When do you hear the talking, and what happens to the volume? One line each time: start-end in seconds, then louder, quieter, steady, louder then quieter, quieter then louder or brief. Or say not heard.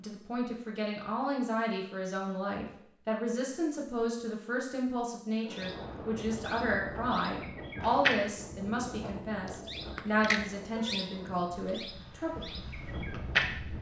0.0-12.4 steady.